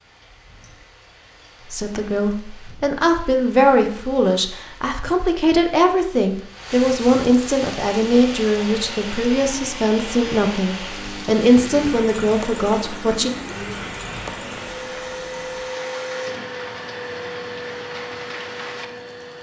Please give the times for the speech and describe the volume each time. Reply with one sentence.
The speech can be heard from 1.7 to 13.3 s, at a steady volume.